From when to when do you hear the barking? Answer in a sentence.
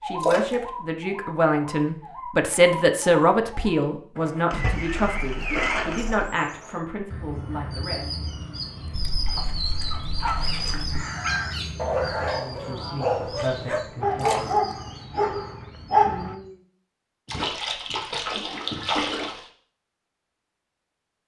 The barking can be heard from 9.9 to 10.4 s and from 11.2 to 16.4 s.